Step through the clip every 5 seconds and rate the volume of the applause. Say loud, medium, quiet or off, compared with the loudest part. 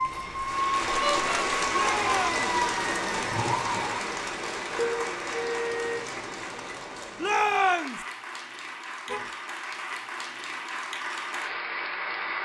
loud, medium, loud.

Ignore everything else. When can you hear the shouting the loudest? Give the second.
8 s.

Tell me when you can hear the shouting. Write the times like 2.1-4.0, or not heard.
1.7-2.4, 7.2-8.1.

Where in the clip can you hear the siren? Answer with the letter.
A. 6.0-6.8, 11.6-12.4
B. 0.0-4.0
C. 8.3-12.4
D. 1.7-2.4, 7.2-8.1
B.